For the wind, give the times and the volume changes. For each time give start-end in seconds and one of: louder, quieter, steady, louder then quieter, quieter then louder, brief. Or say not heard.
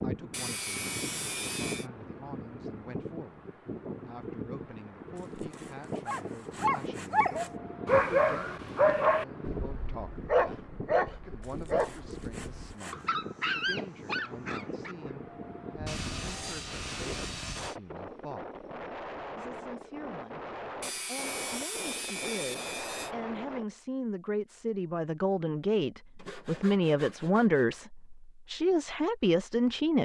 0.0-23.6 steady.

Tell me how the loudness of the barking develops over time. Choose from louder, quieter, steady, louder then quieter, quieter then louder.
quieter.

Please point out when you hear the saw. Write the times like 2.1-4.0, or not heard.
0.3-1.9, 5.2-7.5, 11.4-13.1, 15.8-17.8, 20.8-23.1, 26.1-27.7.